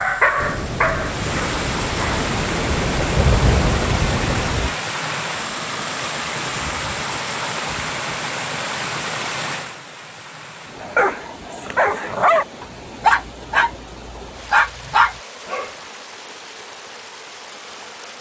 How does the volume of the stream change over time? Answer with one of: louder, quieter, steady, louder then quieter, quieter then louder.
quieter.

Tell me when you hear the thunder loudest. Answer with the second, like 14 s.
3 s.